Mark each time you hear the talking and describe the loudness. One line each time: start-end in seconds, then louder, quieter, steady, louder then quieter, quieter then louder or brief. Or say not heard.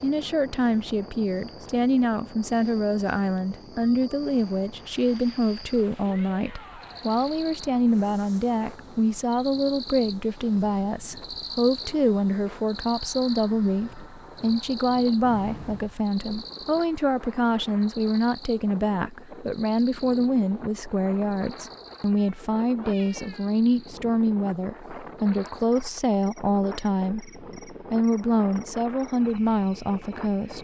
0.0-30.6 steady.